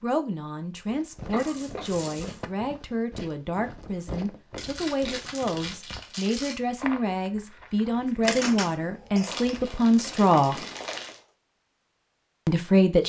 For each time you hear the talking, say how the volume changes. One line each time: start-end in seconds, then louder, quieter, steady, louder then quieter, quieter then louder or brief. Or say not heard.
0.0-10.6 louder
12.4-13.0 brief.